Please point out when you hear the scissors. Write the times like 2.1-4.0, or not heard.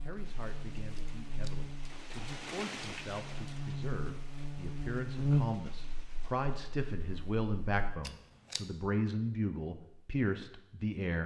0.9-1.6, 8.0-8.7.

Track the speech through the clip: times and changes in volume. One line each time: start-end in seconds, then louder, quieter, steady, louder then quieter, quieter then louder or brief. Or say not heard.
0.0-11.2 louder.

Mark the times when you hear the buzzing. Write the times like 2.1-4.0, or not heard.
0.0-8.0.